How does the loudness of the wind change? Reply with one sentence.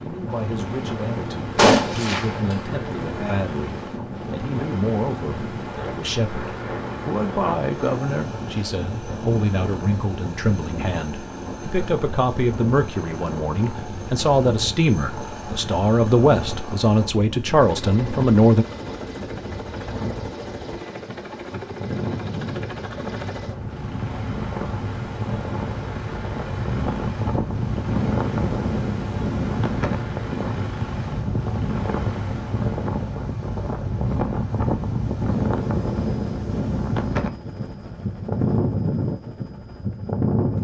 The volume of the wind goes up.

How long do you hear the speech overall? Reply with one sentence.
You can hear the speech for 19 seconds altogether.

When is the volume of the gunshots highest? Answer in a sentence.
The volume of the gunshots peaks at 2 seconds.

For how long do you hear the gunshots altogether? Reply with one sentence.
You can hear the gunshots for 2 seconds altogether.